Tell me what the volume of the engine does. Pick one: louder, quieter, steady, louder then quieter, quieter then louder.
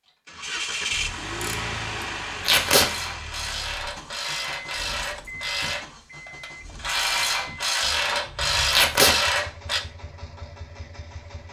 quieter.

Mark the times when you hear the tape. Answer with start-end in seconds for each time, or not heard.
2.5-2.9, 8.7-9.2.